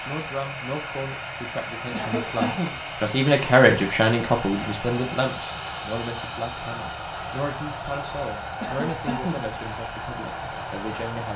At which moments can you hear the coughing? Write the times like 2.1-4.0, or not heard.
1.9-2.8, 8.6-9.6.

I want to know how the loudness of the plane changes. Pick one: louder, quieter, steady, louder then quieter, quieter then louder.
steady.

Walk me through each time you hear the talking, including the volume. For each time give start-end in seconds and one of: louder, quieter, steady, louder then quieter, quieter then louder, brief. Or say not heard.
0.1-11.3 louder then quieter.